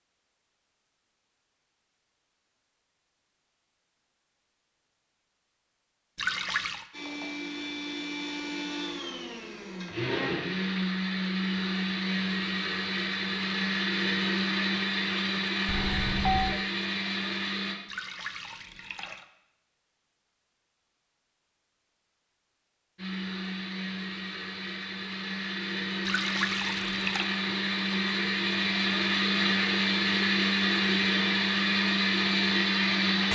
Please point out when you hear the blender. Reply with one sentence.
You can hear the blender from 6.9 to 17.8 s and from 22.9 to 33.2 s.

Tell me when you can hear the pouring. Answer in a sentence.
The pouring can be heard from 6.2 to 6.8 s, from 17.9 to 19.2 s and from 26.1 to 27.2 s.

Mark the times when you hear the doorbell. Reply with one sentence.
The doorbell can be heard from 15.7 to 16.6 s.